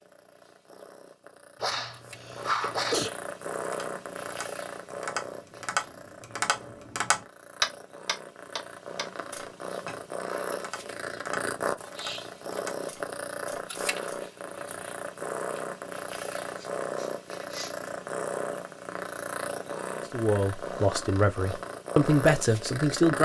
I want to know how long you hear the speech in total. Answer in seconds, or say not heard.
3 s.